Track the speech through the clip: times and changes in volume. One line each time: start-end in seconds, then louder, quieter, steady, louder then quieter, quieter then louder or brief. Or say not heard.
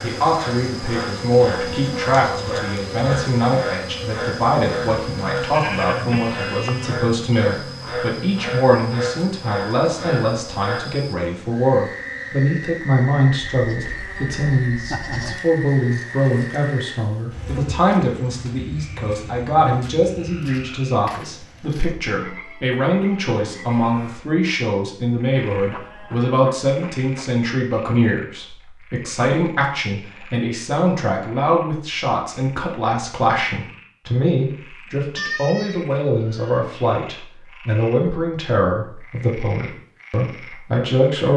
0.0-41.3 steady.